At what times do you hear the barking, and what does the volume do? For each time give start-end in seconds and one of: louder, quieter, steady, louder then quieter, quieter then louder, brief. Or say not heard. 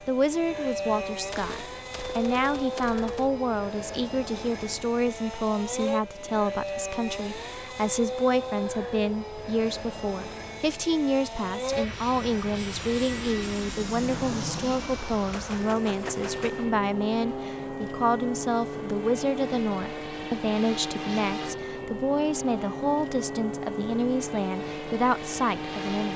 not heard.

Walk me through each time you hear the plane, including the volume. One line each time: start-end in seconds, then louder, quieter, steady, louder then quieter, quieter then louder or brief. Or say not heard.
0.0-26.1 steady.